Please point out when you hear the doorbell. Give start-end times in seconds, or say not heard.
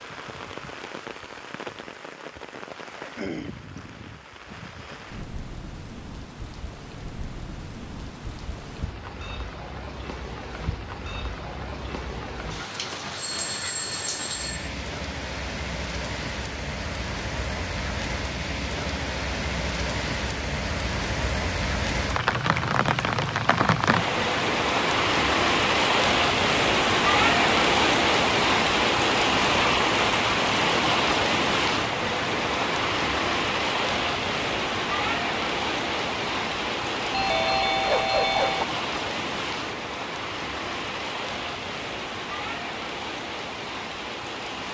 13.2-14.7, 37.1-38.6.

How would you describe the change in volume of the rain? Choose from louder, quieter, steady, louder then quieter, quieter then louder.
louder then quieter.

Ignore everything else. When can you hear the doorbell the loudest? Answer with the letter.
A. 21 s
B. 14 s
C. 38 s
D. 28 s
C.